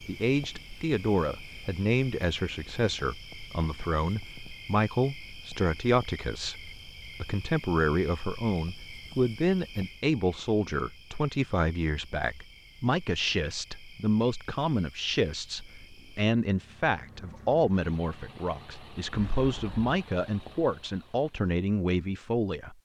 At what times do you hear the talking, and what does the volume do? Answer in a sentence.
You can hear the talking from 0.1 to 22.7 s, at a steady volume.